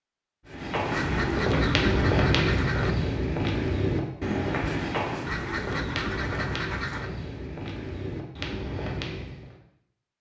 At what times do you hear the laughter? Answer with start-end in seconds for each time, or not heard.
not heard.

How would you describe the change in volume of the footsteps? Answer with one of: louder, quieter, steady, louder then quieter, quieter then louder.
quieter.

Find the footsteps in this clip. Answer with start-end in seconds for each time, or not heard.
0.5-9.6.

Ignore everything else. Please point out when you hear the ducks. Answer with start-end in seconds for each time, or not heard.
0.9-3.0, 5.2-7.1.